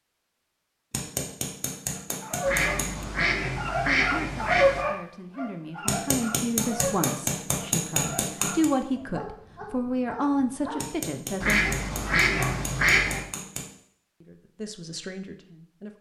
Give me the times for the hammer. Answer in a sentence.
The hammer can be heard from 0.9 to 3.0 s, from 5.8 to 8.7 s and from 10.8 to 13.7 s.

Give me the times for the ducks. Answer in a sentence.
You can hear the ducks from 2.5 to 4.8 s and from 11.4 to 13.2 s.